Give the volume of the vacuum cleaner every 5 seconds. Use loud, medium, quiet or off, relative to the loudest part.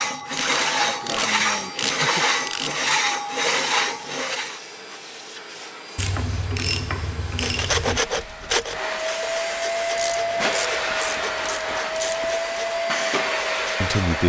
quiet, medium, loud.